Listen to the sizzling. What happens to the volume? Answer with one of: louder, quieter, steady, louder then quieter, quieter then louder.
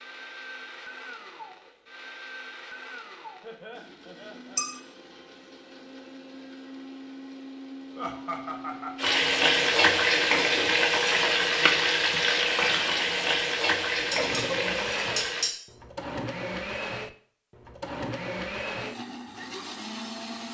quieter.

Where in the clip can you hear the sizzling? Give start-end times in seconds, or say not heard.
8.9-15.5.